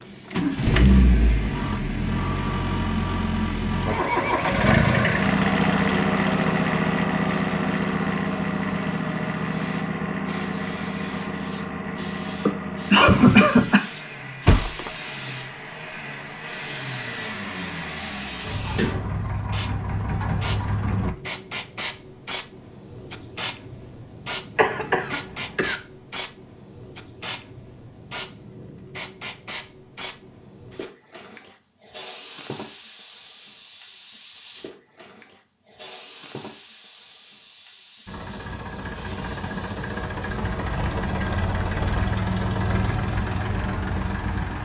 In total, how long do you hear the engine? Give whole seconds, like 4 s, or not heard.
28 s.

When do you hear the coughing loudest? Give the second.
13 s.